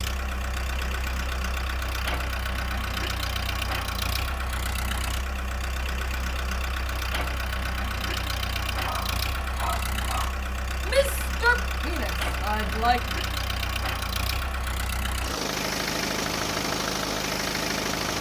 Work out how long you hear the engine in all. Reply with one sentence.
The engine can be heard for 18 seconds in total.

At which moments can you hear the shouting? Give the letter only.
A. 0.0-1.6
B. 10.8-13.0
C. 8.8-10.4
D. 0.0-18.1
B.